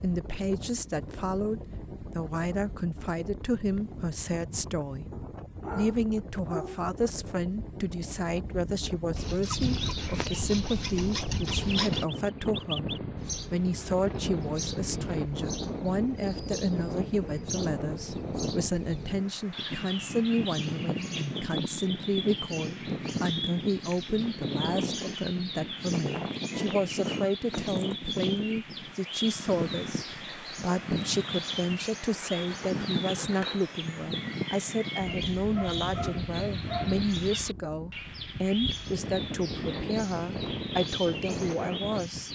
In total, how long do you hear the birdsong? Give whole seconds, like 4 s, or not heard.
33 s.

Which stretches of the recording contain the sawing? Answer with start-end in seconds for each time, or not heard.
9.2-12.1, 32.0-33.7.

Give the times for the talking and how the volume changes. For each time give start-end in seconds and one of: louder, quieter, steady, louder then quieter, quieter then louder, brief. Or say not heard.
0.0-5.0 steady
5.8-42.3 steady.